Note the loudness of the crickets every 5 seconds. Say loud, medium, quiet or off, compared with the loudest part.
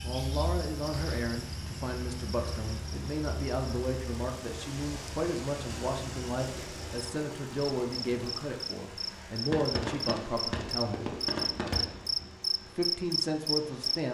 quiet, medium, loud.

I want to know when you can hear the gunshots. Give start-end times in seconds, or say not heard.
9.5-12.1.